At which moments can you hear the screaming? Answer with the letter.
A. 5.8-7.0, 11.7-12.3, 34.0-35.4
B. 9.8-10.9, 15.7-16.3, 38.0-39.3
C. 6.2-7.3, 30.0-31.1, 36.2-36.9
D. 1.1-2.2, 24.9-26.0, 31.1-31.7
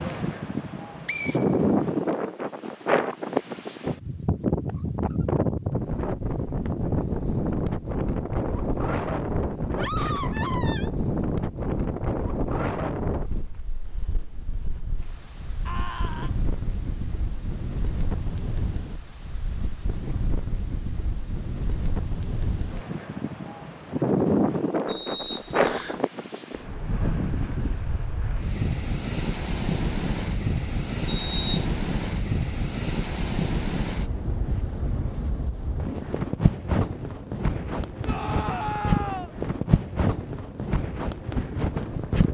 B.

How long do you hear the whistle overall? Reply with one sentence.
The whistle can be heard for 3 seconds in total.